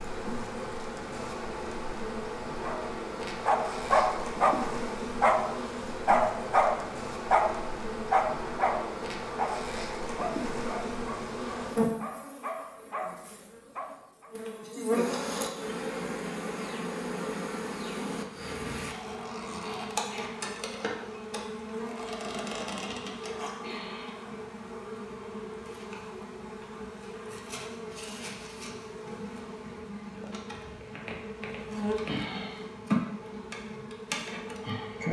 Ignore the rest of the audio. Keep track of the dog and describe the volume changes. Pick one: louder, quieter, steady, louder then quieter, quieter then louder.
quieter.